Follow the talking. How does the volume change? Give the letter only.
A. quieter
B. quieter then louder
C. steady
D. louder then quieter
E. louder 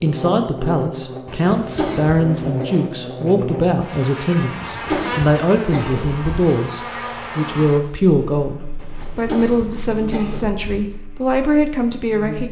C.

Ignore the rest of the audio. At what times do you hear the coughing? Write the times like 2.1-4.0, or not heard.
1.2-2.6, 4.5-6.2, 8.8-10.7.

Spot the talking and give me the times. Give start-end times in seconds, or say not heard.
0.0-12.4.